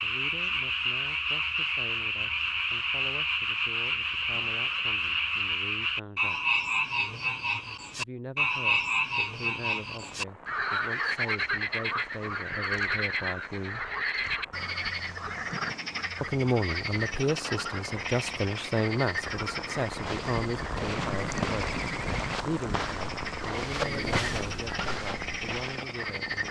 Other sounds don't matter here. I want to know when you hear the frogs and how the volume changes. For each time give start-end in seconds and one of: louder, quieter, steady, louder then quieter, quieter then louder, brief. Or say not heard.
0.0-26.4 quieter.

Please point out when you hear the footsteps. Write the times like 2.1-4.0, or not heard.
19.9-25.9.